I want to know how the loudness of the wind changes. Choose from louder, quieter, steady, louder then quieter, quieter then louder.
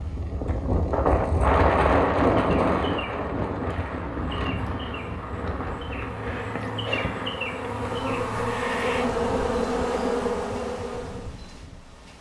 quieter.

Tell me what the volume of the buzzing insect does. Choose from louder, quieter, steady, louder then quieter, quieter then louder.
louder.